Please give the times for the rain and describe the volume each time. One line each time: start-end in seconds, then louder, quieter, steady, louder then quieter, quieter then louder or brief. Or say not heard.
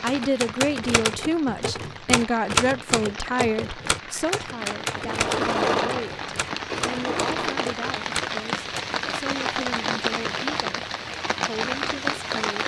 0.0-12.6 louder.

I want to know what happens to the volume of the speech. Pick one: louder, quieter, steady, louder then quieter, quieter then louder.
quieter.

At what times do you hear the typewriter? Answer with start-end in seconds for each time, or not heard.
0.1-9.0.